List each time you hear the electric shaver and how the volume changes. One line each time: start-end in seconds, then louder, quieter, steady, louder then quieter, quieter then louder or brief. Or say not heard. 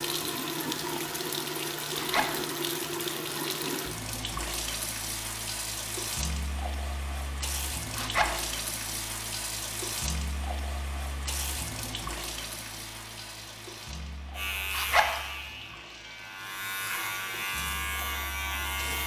14.3-19.0 quieter then louder.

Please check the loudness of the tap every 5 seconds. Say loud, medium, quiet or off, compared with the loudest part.
loud, loud, medium, quiet.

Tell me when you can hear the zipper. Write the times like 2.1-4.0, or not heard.
1.9-2.4, 7.9-8.4, 14.7-15.2.